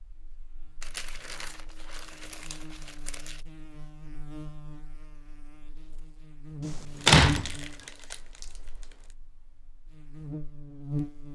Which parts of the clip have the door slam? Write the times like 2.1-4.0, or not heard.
7.0-7.5.